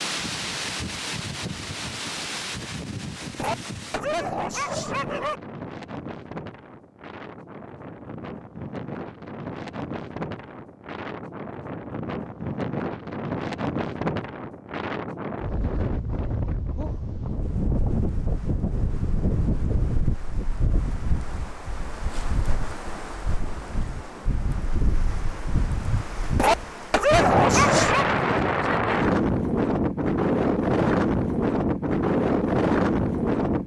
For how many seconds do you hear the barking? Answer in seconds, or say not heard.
4 s.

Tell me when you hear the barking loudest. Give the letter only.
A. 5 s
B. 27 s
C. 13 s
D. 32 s
B.